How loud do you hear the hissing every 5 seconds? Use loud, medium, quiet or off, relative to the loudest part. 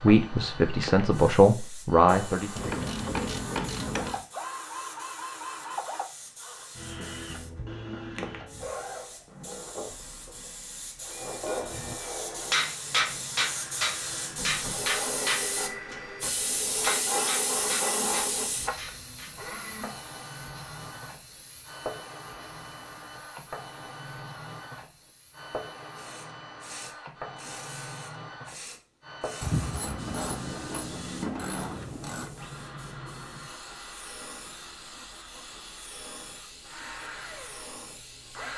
quiet, quiet, medium, loud, quiet, quiet, quiet, quiet.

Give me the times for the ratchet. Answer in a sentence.
You can hear the ratchet from 2.5 to 4.2 s and from 29.4 to 32.4 s.